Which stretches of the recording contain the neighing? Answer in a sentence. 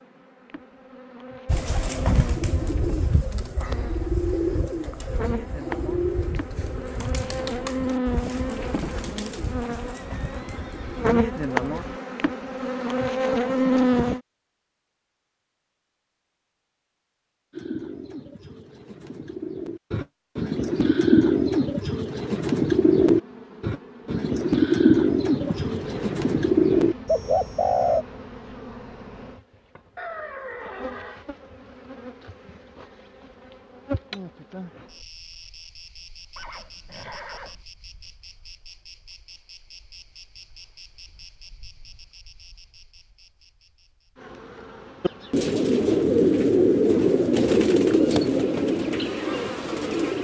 You can hear the neighing from 9.9 to 11.2 s, from 29.9 to 31.2 s and from 36.4 to 37.6 s.